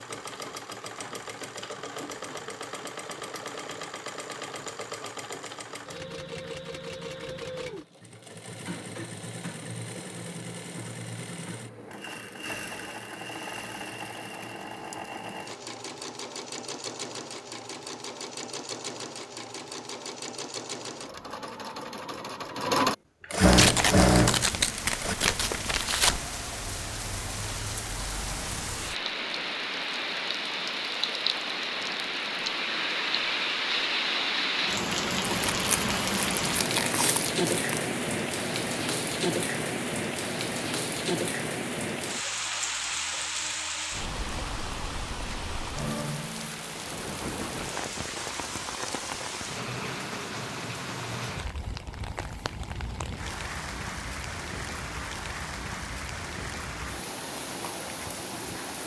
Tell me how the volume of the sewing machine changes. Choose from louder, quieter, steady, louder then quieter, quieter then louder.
louder.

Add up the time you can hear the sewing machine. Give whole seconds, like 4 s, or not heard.
25 s.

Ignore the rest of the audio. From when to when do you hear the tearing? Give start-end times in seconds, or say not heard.
23.4-26.2, 35.5-37.8.